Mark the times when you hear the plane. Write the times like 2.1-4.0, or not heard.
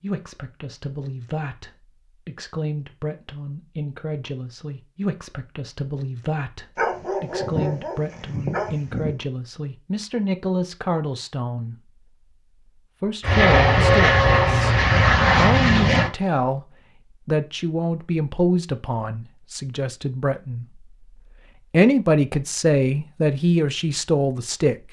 13.2-16.1.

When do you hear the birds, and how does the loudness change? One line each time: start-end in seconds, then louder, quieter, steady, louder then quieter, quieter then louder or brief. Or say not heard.
not heard.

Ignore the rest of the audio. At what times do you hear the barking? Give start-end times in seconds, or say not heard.
6.8-9.2.